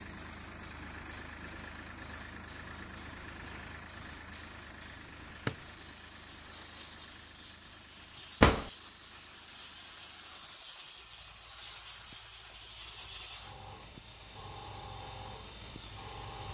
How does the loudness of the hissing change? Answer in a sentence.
The loudness of the hissing goes up.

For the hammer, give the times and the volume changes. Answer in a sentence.
You can't hear the hammer here.